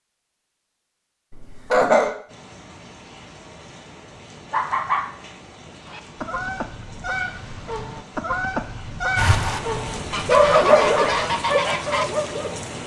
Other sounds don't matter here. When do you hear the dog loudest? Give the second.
10 s.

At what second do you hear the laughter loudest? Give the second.
2 s.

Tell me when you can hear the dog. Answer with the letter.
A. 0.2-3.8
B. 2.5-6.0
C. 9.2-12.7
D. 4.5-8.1
C.